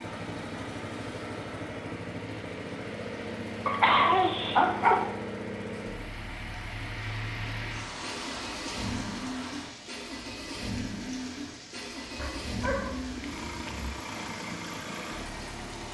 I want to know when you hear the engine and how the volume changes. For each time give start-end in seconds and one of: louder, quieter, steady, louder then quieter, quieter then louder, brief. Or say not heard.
0.0-15.8 steady.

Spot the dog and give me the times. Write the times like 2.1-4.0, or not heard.
3.6-5.1, 12.2-13.9.